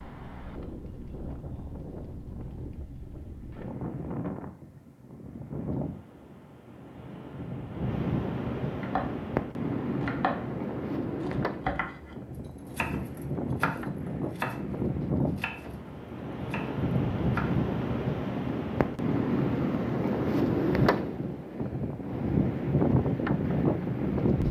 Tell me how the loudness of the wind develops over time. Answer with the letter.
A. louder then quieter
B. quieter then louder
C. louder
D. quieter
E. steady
C.